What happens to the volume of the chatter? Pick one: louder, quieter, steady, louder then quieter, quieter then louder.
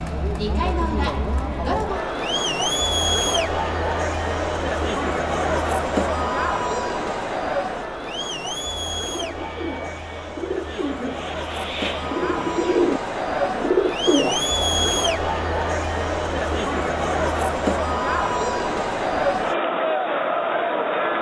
quieter then louder.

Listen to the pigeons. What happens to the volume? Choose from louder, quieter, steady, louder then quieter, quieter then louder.
louder.